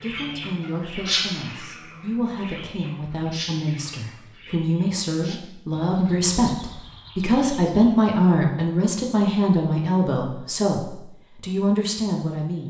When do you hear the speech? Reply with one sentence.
The speech can be heard from 0.0 to 12.6 s.